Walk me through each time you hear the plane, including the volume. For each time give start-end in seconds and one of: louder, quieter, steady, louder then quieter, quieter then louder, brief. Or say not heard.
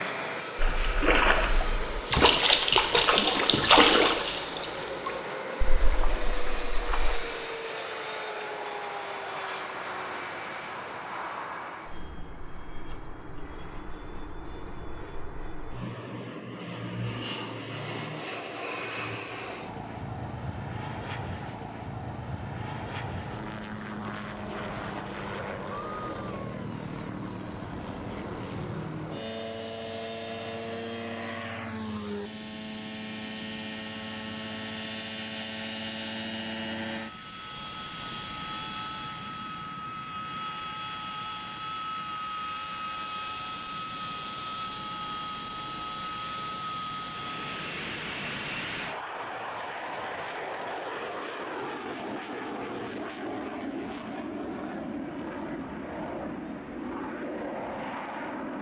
0.0-58.5 steady.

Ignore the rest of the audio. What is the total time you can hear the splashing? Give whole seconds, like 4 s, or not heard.
7 s.